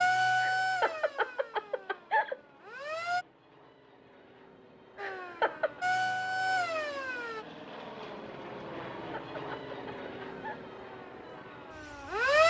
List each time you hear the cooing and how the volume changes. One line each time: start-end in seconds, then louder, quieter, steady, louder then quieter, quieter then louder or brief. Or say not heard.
not heard.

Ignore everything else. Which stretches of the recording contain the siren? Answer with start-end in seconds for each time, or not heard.
0.0-3.2, 5.0-7.5, 10.2-12.4.